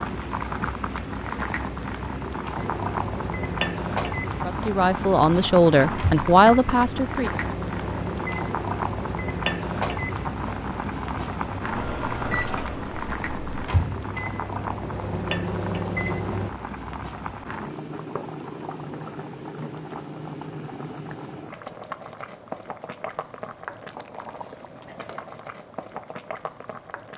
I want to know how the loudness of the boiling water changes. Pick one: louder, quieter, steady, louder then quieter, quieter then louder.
quieter.